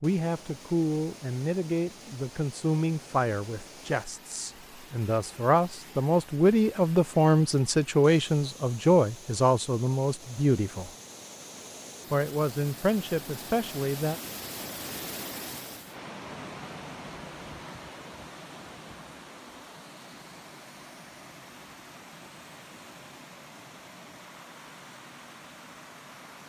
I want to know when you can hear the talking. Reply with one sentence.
You can hear the talking from 0.0 to 10.9 s and from 12.1 to 14.2 s.